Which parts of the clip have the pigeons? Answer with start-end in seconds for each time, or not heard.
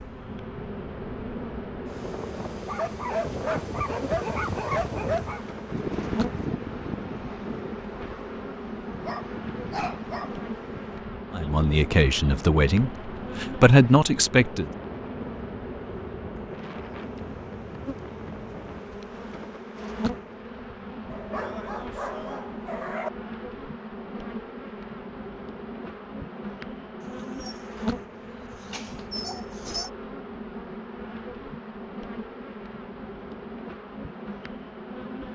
not heard.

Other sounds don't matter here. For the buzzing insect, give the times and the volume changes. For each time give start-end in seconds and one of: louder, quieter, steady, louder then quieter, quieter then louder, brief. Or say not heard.
0.0-35.3 steady.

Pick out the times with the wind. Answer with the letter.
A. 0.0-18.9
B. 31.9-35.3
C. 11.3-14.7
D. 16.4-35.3
A.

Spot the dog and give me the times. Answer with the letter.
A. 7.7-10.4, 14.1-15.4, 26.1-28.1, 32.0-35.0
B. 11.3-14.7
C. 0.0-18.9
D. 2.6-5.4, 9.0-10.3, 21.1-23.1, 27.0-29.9
D.